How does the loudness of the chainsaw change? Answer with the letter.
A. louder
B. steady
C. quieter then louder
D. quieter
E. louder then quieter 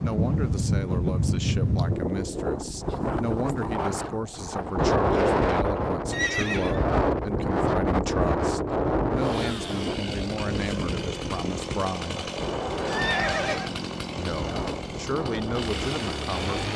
B.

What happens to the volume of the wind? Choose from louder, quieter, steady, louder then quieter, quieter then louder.
quieter.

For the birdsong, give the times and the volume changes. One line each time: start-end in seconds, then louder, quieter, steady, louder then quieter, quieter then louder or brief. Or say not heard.
not heard.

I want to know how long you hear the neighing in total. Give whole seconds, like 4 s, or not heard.
2 s.